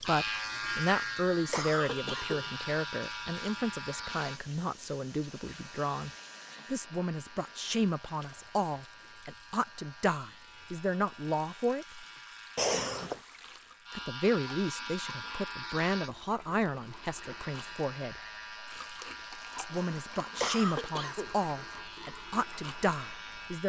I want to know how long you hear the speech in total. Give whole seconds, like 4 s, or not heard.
20 s.